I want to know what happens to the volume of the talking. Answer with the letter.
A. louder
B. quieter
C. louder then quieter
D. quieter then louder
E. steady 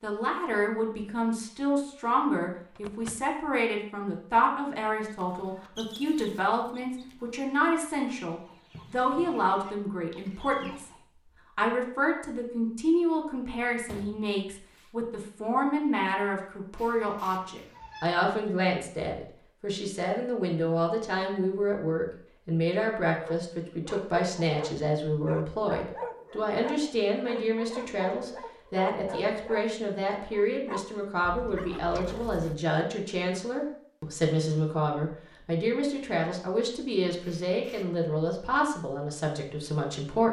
E.